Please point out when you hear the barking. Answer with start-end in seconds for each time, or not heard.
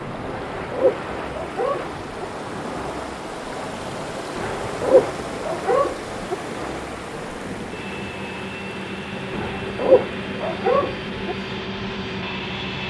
0.2-2.2, 4.3-6.3, 9.3-11.3.